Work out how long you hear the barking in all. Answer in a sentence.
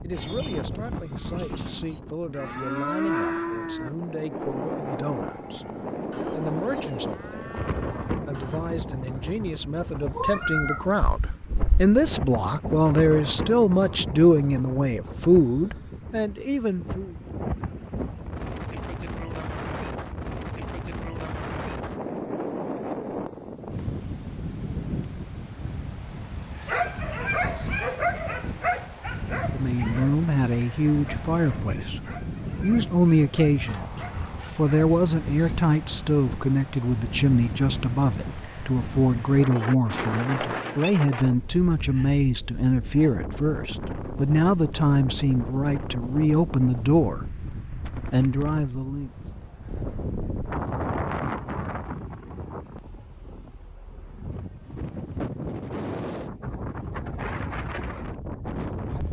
You can hear the barking for 8 seconds altogether.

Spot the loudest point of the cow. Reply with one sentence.
The loudest moment of the cow is at 3 seconds.